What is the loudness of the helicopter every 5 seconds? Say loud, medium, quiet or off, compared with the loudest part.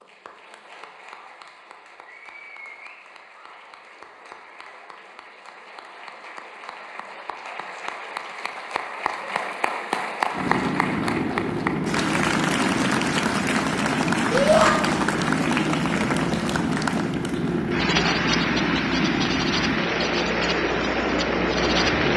off, off, loud, loud, loud.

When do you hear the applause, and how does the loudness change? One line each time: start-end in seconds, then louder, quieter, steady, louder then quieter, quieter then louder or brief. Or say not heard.
0.0-22.1 louder.